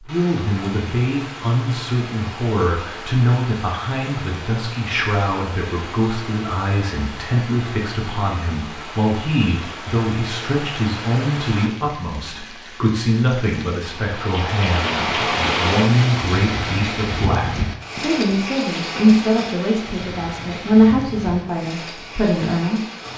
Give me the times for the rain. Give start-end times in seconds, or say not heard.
0.1-23.1.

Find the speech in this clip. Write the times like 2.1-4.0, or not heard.
0.0-23.1.